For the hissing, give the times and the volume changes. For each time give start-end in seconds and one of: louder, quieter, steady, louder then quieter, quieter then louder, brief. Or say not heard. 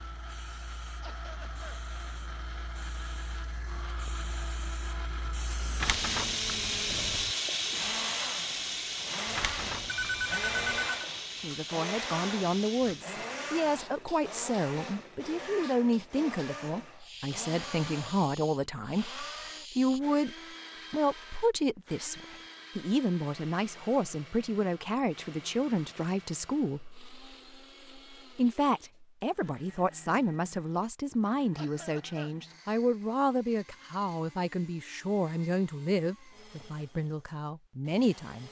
0.0-20.0 louder then quieter.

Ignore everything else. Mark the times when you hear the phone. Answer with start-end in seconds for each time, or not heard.
9.8-11.1.